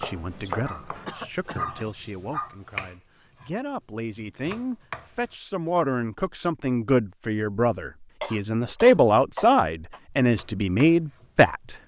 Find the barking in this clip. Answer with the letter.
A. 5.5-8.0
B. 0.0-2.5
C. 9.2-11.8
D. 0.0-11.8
B.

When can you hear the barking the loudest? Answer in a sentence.
The volume of the barking peaks at 2 seconds.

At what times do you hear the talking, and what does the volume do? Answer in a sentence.
You can hear the talking from 0.0 to 11.8 s, getting louder.